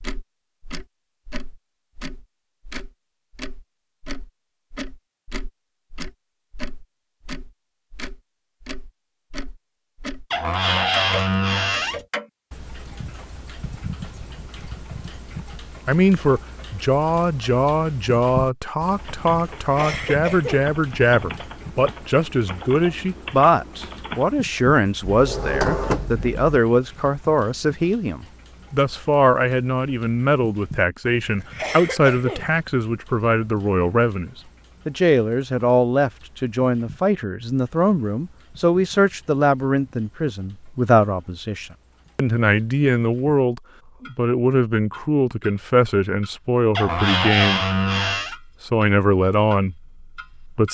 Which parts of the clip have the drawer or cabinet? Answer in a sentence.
You can hear the drawer or cabinet from 10.3 to 12.0 s, from 25.1 to 26.4 s and from 46.8 to 48.4 s.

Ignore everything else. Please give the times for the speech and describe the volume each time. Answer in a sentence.
You can hear the speech from 15.8 to 47.6 s, at a steady volume; and briefly from 48.6 to 50.6 s.